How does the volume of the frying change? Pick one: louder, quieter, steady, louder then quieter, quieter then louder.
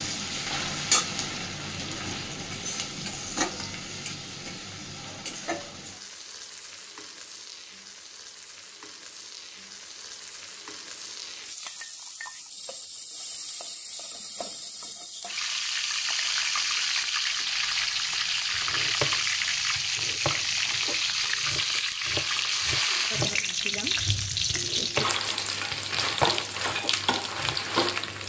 quieter then louder.